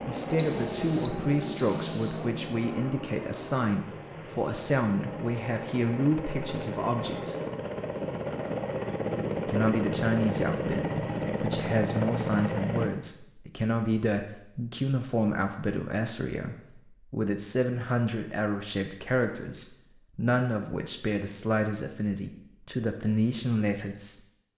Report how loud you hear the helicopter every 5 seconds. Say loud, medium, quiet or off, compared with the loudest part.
medium, loud, loud, off, off.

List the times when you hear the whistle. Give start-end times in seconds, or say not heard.
0.3-2.2.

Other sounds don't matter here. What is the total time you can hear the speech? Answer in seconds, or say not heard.
22 s.